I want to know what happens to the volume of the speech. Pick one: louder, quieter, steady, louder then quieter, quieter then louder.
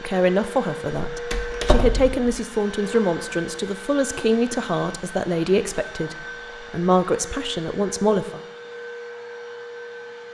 steady.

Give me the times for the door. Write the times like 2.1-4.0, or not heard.
1.1-2.4.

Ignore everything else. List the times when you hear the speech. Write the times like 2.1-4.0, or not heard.
0.0-8.4.